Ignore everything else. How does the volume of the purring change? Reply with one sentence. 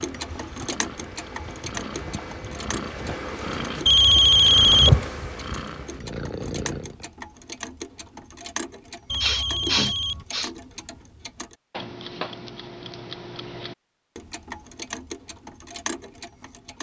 The volume of the purring goes up, then down.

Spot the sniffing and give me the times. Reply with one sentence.
You can hear the sniffing from 9.2 to 10.5 s.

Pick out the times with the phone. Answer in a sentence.
The phone can be heard from 3.9 to 5.0 s and from 9.1 to 10.2 s.